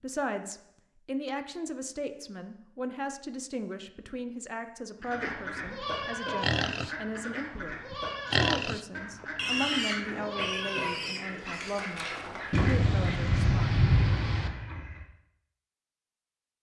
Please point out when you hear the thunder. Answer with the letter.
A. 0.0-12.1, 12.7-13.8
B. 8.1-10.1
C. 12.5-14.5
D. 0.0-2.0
C.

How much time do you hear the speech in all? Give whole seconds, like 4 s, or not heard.
13 s.